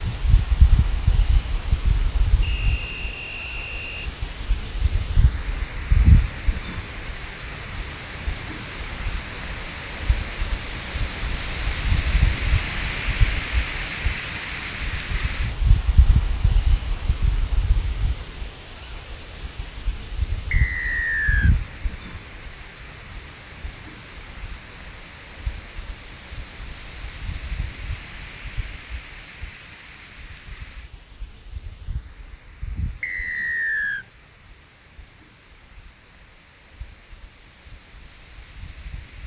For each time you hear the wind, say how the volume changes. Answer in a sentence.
You can hear the wind from 0.0 to 39.2 s, getting quieter.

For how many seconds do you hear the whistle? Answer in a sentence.
The whistle can be heard for 4 seconds in total.